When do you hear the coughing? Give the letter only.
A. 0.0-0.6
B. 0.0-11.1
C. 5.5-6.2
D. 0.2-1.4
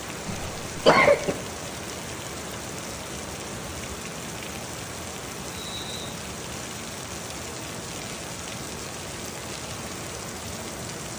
D.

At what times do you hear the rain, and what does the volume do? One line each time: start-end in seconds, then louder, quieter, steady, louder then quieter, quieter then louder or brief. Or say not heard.
0.0-11.1 steady.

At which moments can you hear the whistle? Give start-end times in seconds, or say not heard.
5.5-6.2.